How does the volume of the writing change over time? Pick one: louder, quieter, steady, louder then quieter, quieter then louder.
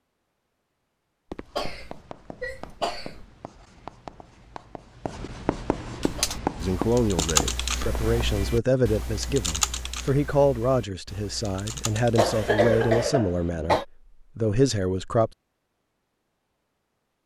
louder.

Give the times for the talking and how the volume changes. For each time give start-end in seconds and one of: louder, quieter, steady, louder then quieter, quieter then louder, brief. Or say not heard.
6.6-15.3 steady.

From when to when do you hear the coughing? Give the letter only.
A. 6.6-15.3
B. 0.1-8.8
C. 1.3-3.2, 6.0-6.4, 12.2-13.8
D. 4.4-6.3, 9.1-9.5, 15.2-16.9
C.